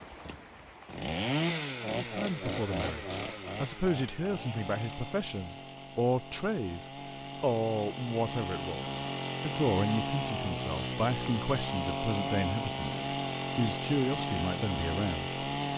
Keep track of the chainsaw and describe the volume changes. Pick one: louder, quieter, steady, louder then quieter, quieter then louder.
quieter then louder.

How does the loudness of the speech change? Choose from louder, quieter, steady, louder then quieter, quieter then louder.
steady.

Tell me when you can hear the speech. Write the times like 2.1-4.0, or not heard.
1.9-15.3.